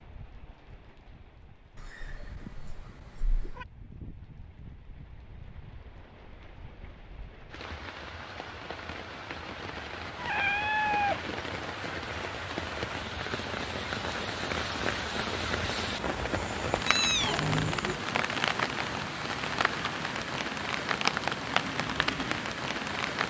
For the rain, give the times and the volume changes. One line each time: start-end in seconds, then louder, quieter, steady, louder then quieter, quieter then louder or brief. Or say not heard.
0.0-23.2 louder.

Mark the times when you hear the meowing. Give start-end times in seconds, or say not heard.
1.8-3.6, 10.2-11.3, 16.4-17.9.